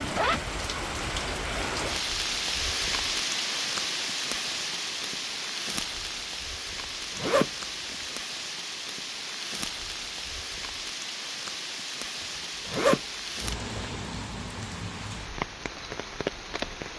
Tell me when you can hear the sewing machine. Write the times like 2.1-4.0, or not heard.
not heard.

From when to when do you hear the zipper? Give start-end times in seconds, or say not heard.
0.0-0.6, 7.2-8.1, 12.7-13.9.